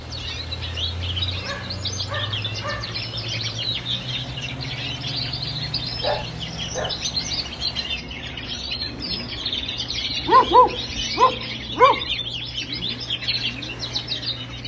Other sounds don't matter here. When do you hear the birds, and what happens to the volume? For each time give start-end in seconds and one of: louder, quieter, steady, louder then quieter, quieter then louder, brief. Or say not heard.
0.0-14.6 steady.